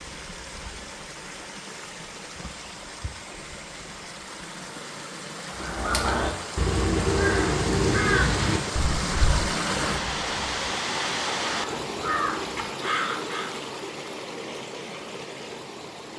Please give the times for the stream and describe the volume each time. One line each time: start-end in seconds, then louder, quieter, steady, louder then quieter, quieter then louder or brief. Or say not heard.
0.0-16.1 louder then quieter.